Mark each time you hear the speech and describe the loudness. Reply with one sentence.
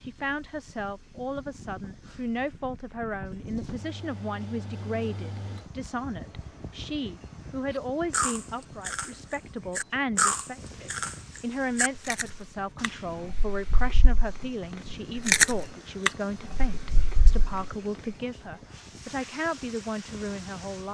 You can hear the speech from 0.0 to 20.8 s, at a steady volume.